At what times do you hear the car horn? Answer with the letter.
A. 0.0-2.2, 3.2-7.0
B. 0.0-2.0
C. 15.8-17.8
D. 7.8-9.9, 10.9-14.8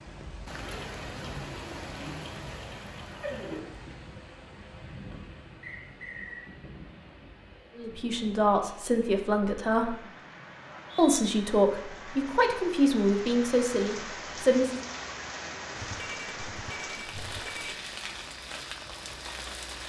C.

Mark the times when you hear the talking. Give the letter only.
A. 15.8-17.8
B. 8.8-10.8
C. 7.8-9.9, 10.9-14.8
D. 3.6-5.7
C.